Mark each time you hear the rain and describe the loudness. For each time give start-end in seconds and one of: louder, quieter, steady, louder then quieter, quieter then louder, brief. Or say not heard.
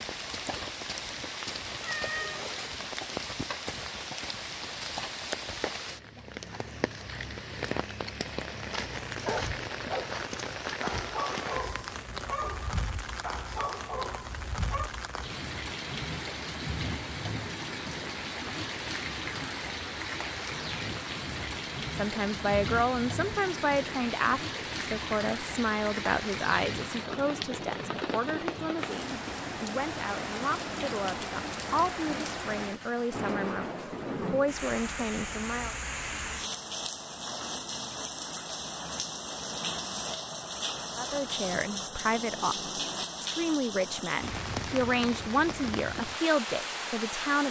0.0-47.4 steady.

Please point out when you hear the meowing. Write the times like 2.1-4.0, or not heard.
1.8-2.8.